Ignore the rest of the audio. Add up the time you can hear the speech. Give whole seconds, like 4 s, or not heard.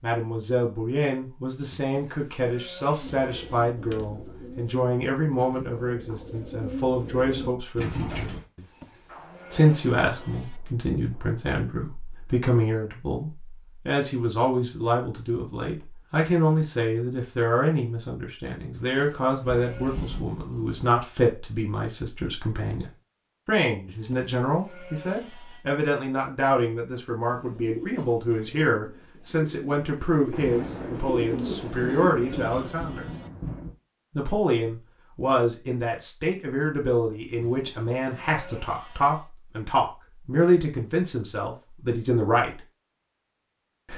40 s.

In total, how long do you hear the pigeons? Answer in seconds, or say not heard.
11 s.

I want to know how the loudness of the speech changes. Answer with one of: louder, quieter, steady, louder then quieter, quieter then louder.
steady.